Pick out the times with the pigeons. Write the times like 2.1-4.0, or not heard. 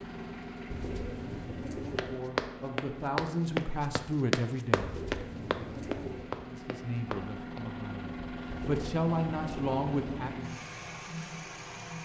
0.7-2.2, 4.8-6.3, 8.5-10.3.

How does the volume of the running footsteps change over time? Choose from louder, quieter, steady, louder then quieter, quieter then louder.
quieter.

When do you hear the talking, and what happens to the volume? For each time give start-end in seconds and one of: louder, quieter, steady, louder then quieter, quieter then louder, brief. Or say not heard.
2.0-5.0 brief
6.5-10.6 quieter then louder.